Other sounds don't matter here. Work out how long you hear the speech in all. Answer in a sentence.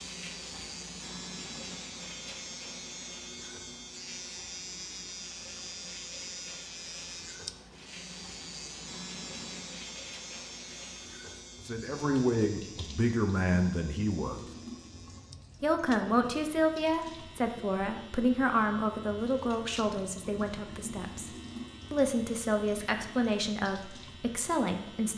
The speech can be heard for 12 seconds in total.